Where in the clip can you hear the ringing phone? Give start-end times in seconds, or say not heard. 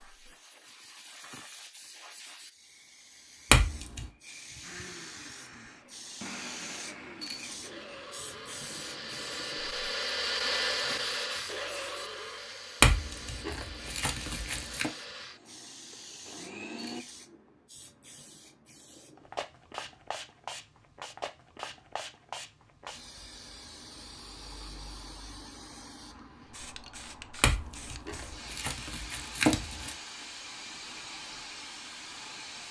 not heard.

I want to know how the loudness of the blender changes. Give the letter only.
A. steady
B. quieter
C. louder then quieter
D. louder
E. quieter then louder
C.